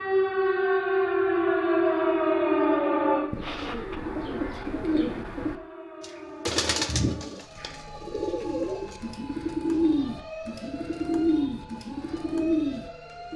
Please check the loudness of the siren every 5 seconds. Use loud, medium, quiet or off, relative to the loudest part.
loud, quiet, quiet.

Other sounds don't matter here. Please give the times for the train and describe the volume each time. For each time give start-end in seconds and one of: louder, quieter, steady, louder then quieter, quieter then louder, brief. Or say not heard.
not heard.